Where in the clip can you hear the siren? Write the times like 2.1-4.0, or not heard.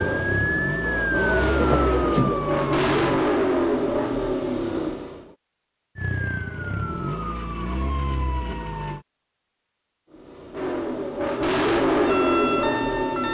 0.0-3.2, 6.0-9.1, 11.9-13.2.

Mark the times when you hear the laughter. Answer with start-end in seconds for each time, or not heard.
1.6-2.4.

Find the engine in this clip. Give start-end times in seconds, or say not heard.
0.0-5.3, 10.1-13.2.